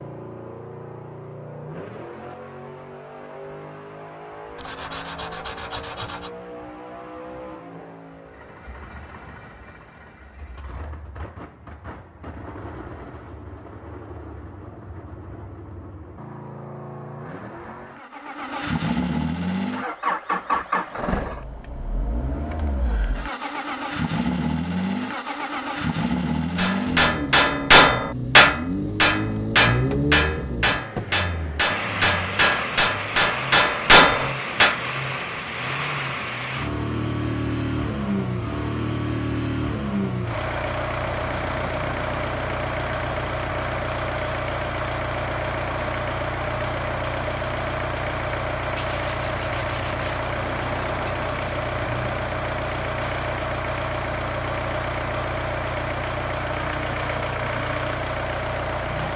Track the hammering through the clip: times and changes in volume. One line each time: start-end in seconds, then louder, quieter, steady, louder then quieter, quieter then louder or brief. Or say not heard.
26.6-34.8 quieter then louder.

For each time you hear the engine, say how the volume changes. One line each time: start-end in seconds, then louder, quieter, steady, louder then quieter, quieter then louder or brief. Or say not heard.
0.0-59.1 louder.